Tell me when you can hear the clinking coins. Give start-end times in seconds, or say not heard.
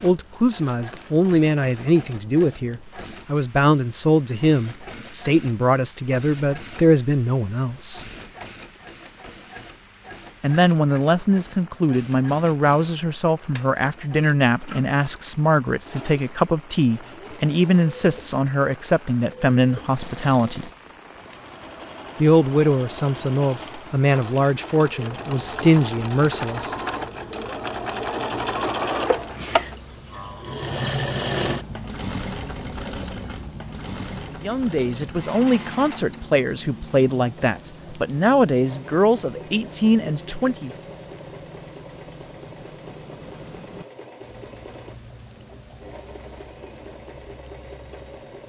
not heard.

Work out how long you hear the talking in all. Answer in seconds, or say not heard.
29 s.